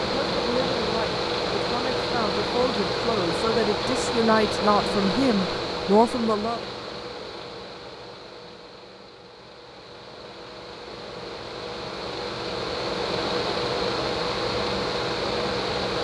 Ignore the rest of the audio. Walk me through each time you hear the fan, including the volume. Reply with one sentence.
The fan can be heard from 0.0 to 16.0 s, getting quieter then louder.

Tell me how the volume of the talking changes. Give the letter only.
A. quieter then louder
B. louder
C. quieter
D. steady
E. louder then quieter
B.